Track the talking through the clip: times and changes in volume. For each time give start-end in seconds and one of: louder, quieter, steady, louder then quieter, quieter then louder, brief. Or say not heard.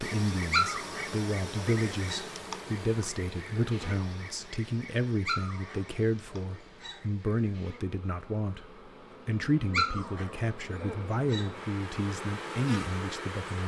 0.0-13.6 steady.